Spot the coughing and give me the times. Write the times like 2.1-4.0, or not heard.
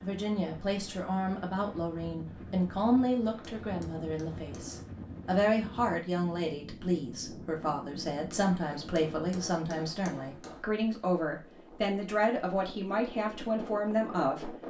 not heard.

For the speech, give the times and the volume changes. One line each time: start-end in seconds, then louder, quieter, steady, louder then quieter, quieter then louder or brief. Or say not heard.
0.0-14.6 steady.